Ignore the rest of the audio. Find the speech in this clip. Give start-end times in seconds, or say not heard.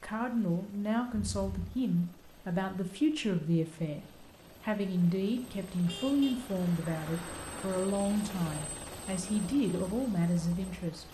0.0-11.0.